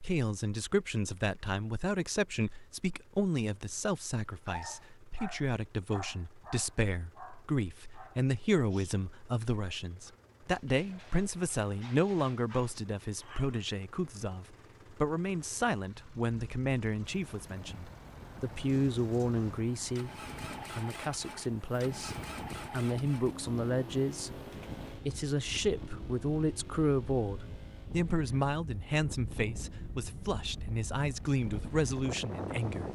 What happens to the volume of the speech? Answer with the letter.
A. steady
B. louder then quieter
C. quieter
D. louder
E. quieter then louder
A.